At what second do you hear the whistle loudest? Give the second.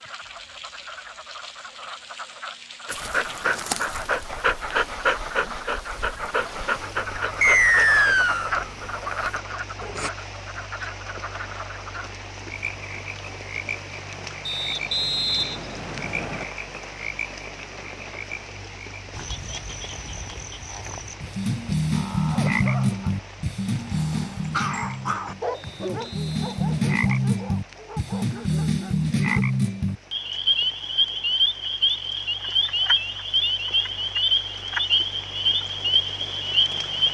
8 s.